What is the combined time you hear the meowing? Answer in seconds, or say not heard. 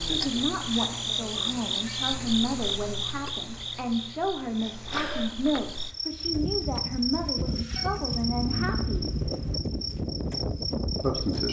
2 s.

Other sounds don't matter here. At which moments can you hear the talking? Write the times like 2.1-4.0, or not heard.
0.1-9.2, 11.0-11.4.